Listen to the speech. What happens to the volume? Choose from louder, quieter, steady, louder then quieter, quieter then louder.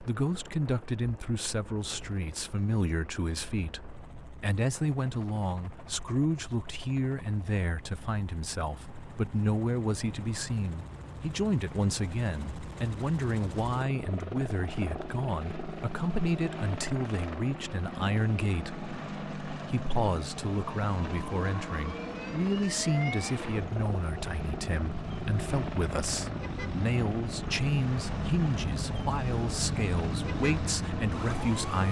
steady.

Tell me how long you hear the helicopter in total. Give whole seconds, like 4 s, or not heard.
32 s.